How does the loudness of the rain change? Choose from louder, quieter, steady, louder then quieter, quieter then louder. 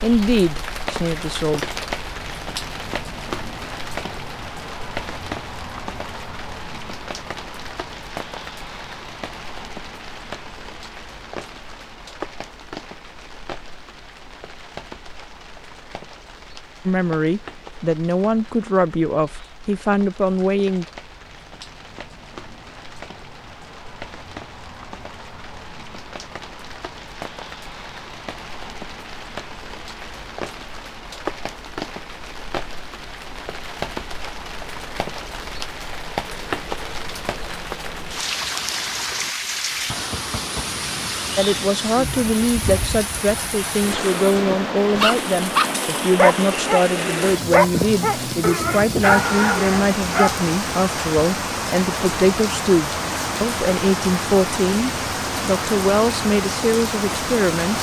quieter then louder.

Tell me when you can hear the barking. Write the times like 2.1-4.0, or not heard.
45.0-50.4.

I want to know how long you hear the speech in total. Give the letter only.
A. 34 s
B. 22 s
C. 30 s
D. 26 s
B.